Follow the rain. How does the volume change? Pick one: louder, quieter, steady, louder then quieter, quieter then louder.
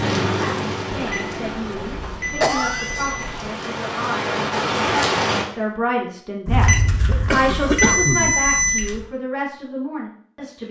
quieter then louder.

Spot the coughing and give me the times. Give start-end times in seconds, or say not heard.
2.4-3.1, 6.5-8.3.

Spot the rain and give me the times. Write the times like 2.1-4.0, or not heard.
0.0-5.5.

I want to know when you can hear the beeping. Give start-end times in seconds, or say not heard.
0.9-3.5, 6.5-9.1.